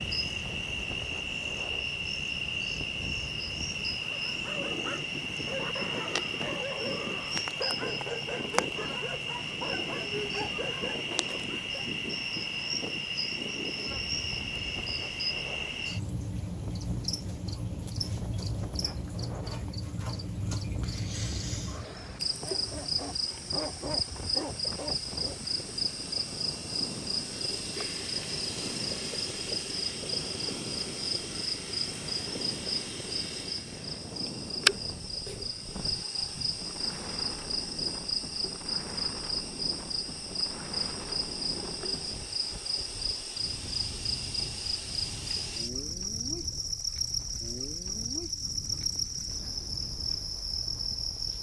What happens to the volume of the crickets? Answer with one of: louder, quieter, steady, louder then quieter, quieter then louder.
steady.